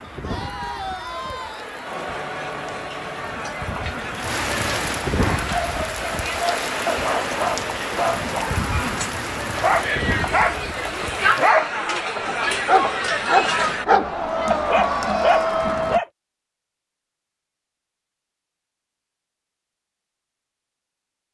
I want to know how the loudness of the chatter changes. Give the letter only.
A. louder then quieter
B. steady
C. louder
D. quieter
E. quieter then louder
C.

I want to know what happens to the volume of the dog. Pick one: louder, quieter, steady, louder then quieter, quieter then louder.
louder.